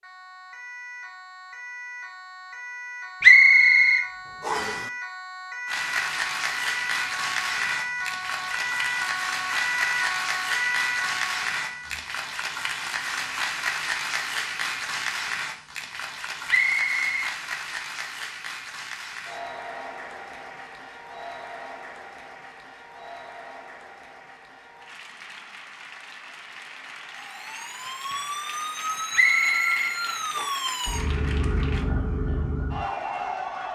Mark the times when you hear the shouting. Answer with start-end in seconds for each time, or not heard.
not heard.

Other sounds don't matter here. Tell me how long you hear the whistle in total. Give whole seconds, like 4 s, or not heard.
4 s.